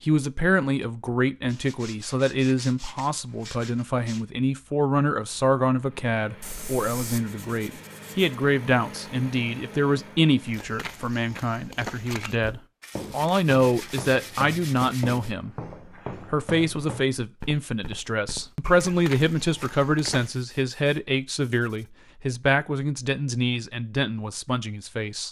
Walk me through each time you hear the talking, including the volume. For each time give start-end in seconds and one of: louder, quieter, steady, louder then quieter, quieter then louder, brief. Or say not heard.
0.0-25.2 steady.